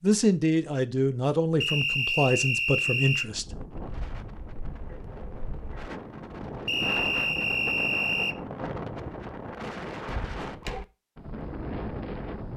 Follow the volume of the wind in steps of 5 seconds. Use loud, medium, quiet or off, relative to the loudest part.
medium, loud, loud.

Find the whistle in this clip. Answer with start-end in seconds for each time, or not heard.
1.6-3.2, 6.7-8.3.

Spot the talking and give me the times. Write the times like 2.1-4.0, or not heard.
0.0-3.5.